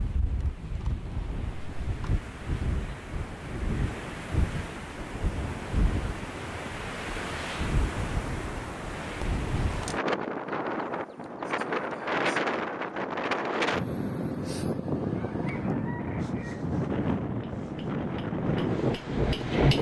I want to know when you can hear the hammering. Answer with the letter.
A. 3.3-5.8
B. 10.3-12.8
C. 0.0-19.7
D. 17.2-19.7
D.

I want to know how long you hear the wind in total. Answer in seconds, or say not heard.
20 s.